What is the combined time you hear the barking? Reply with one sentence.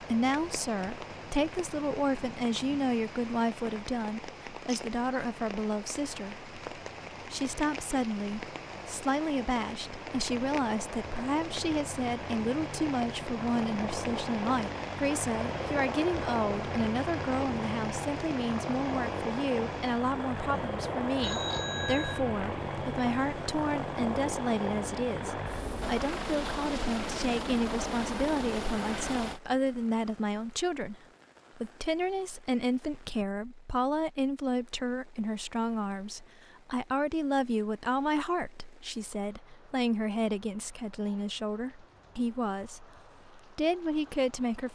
You can't hear the barking here.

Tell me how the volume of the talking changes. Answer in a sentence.
The loudness of the talking stays about the same.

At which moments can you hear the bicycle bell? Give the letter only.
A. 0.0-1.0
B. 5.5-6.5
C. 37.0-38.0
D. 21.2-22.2
D.